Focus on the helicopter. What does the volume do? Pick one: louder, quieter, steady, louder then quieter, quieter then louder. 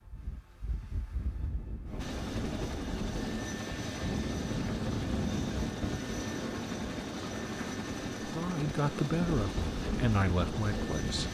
steady.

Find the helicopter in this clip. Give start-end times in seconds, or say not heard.
1.9-11.2.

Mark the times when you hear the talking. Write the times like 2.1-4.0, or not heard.
8.2-11.2.